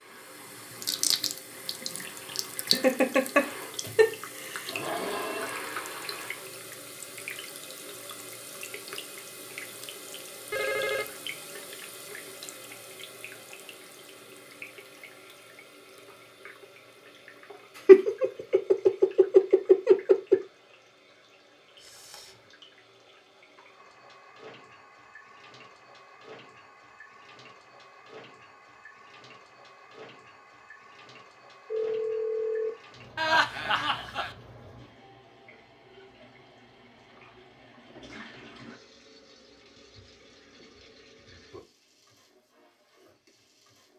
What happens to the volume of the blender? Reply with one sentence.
The loudness of the blender goes up.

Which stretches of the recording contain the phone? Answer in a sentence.
You can hear the phone from 10.5 to 11.2 s, from 21.8 to 22.4 s and from 31.7 to 32.7 s.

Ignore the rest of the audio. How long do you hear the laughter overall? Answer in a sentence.
The laughter can be heard for 6 seconds in total.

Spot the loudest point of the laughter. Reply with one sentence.
The volume of the laughter peaks at 18 seconds.